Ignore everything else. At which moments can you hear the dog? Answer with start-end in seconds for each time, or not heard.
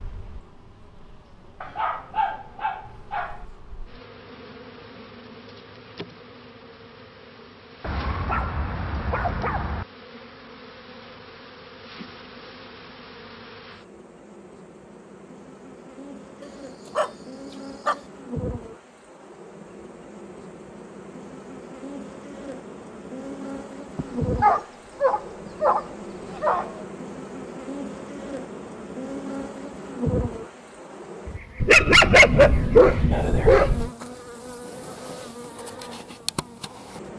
1.6-3.5, 7.8-9.8, 16.4-18.0, 23.9-26.8, 31.6-33.9.